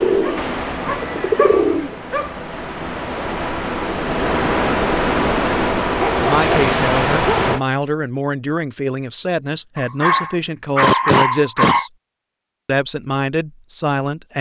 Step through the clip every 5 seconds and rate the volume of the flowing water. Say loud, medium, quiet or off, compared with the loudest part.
medium, loud, off.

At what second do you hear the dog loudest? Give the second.
11 s.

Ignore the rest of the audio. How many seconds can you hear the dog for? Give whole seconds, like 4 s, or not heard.
6 s.